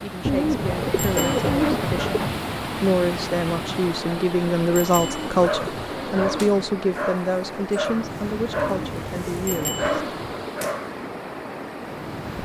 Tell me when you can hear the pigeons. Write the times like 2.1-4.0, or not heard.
0.2-2.4, 5.0-6.6, 8.6-10.6.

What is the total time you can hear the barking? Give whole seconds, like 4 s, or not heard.
6 s.